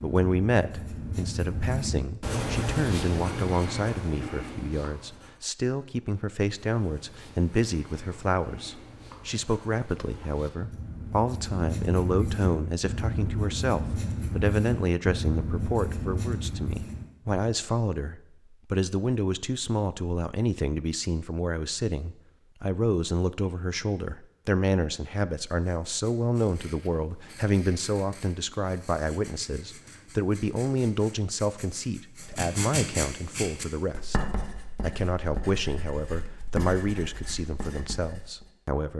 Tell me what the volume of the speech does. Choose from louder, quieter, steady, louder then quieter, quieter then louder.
steady.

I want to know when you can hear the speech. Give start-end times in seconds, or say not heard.
0.0-38.9.